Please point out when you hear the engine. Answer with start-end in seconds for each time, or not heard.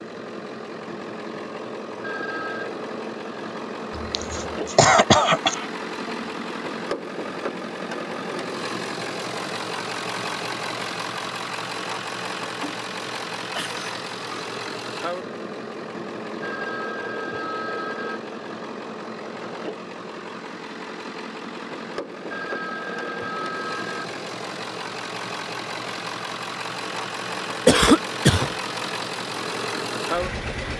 0.0-30.7.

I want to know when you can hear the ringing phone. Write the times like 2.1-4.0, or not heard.
2.0-2.7, 16.4-18.2, 22.3-24.1.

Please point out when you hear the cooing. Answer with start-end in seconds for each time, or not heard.
not heard.